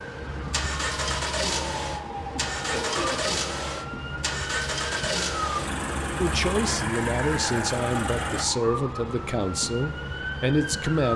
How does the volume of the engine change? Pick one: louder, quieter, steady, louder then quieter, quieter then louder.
steady.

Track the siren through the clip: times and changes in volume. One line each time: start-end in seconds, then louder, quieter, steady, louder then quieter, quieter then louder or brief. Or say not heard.
0.0-11.1 steady.